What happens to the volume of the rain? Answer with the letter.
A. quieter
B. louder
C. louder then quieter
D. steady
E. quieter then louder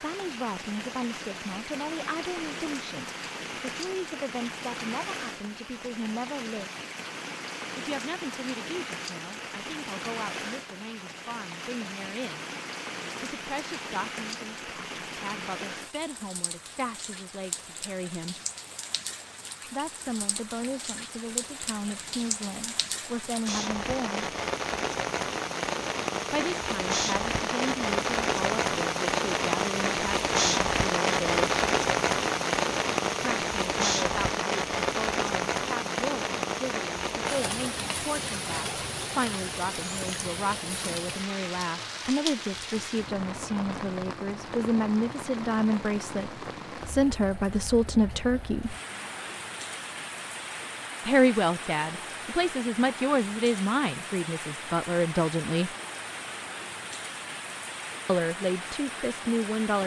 C.